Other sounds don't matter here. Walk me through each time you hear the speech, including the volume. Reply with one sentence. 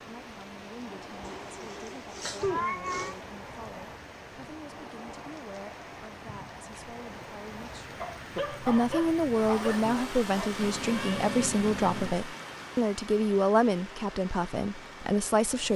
The speech can be heard from 0.0 to 15.7 s, getting louder.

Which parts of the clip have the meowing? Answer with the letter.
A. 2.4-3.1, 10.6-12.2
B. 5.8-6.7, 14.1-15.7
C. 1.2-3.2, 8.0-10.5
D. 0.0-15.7
A.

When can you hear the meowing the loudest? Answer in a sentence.
The loudest moment of the meowing is at 3 seconds.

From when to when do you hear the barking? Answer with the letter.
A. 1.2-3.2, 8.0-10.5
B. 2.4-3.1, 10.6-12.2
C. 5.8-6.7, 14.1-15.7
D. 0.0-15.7
A.